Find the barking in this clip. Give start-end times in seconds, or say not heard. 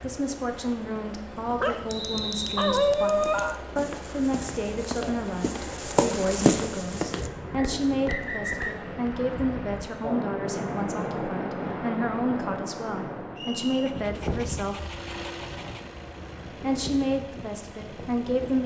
1.6-3.6, 13.8-15.8.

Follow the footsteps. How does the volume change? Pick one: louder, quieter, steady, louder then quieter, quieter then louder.
louder then quieter.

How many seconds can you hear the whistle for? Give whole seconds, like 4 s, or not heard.
3 s.